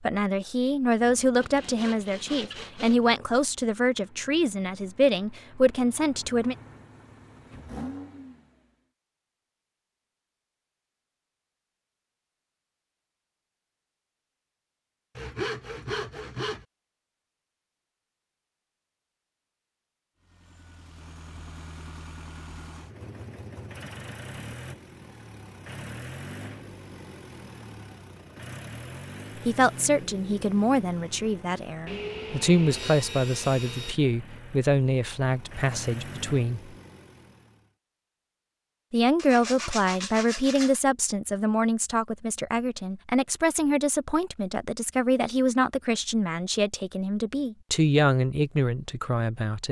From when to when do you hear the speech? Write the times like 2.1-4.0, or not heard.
0.0-6.5, 29.4-36.7, 38.9-49.6.